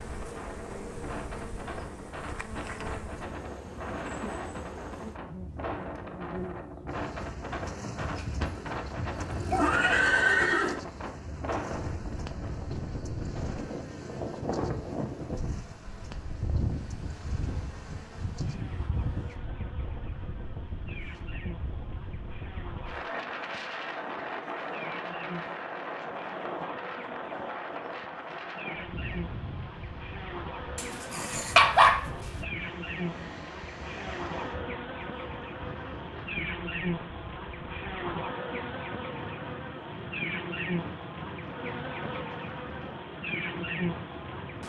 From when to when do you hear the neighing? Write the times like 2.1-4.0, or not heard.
8.0-10.8.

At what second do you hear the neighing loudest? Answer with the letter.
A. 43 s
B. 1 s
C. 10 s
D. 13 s
C.